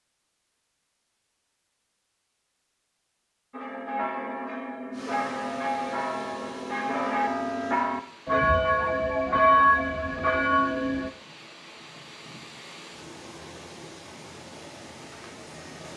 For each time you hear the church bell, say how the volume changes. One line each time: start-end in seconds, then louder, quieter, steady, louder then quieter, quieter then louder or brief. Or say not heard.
3.5-11.1 louder.